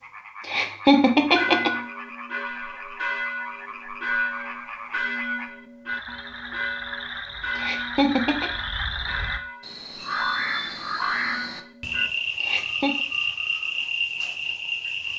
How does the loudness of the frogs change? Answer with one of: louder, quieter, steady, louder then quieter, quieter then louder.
louder.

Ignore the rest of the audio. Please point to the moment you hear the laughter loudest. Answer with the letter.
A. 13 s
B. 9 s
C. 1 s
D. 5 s
C.